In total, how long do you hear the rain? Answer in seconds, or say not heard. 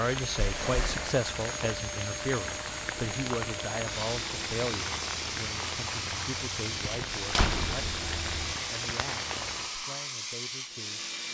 10 s.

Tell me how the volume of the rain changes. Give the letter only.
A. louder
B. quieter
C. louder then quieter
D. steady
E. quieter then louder
D.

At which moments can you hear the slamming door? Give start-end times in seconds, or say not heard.
0.3-1.2, 7.3-8.6.